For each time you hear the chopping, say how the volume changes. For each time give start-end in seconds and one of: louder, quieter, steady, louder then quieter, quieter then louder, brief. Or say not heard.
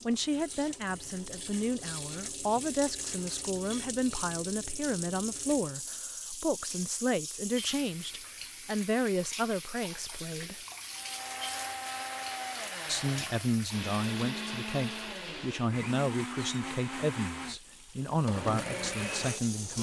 not heard.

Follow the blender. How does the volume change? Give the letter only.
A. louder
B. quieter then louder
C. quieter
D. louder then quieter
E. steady
E.